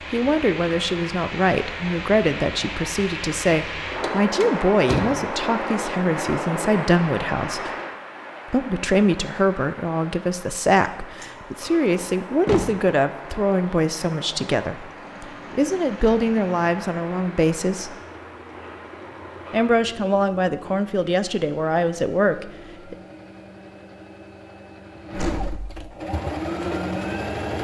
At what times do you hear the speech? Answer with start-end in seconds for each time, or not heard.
0.1-7.7, 8.5-17.9, 19.5-22.9.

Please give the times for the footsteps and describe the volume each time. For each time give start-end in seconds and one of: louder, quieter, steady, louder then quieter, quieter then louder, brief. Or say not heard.
not heard.